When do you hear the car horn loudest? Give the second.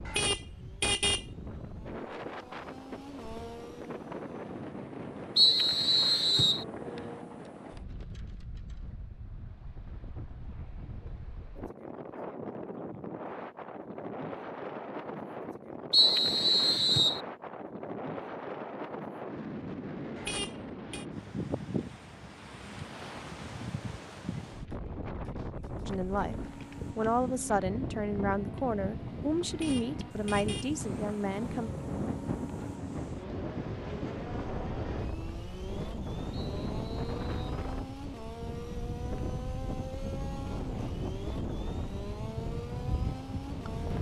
1 s.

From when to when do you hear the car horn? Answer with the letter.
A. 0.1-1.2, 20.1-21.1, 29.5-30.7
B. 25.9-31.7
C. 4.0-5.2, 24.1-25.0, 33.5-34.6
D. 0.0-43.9
A.